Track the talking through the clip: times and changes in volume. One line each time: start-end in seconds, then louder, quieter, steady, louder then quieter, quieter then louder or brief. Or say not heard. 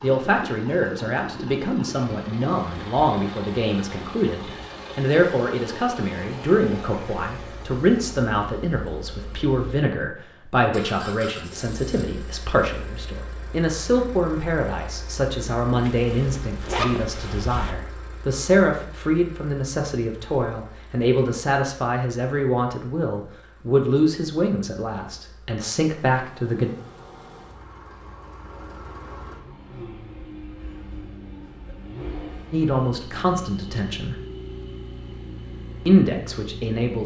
0.0-26.7 steady
32.5-34.1 brief
35.9-37.0 brief.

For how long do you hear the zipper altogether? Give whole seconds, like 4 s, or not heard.
2 s.